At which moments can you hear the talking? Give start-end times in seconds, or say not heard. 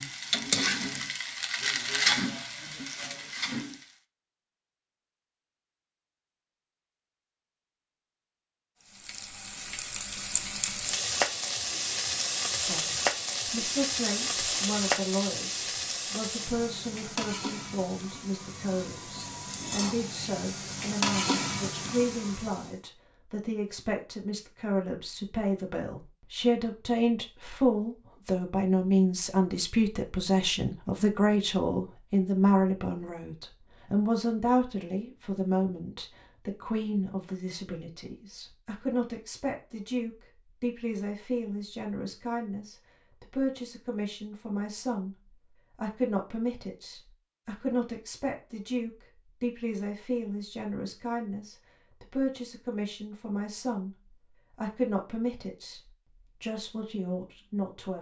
12.6-57.9.